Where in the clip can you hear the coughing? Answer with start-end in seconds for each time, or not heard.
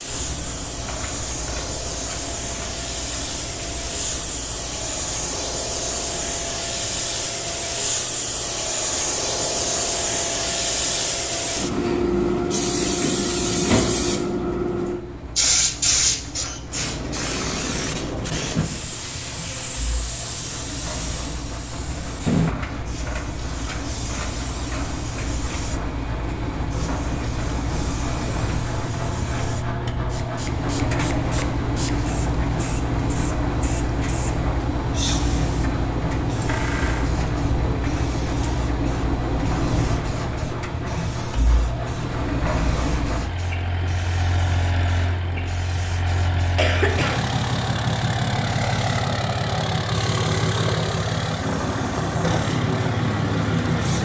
46.5-47.2.